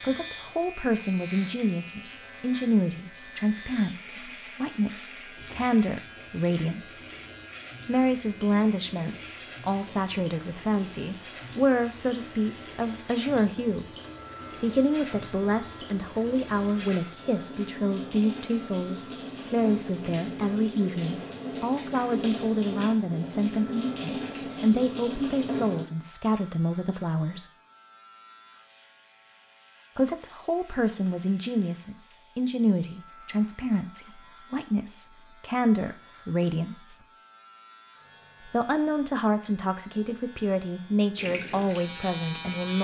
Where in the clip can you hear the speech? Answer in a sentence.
The speech can be heard from 0.0 to 7.0 s, from 7.8 to 13.9 s, from 14.6 to 27.5 s, from 29.9 to 37.0 s and from 38.4 to 42.7 s.